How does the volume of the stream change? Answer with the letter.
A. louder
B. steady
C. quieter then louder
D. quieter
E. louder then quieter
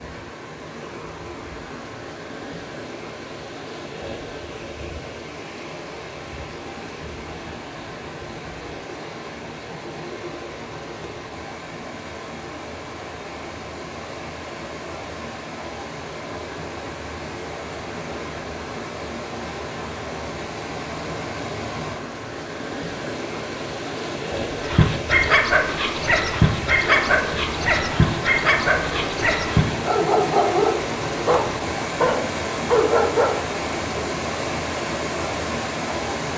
A.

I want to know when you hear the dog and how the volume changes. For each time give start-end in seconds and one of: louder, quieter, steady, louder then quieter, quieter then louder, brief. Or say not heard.
24.6-34.0 steady.